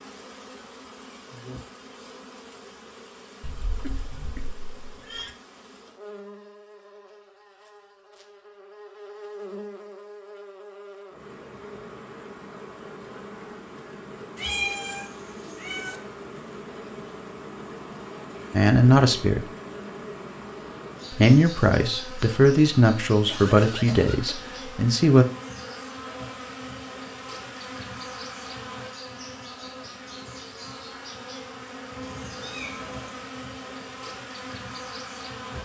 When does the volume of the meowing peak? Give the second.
15 s.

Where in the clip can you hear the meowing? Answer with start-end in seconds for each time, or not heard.
3.4-5.3, 14.3-16.0, 32.0-33.2.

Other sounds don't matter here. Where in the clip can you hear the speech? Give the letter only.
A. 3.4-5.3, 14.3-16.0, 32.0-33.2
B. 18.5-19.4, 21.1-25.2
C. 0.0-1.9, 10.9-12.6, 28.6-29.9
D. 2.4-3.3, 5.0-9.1
B.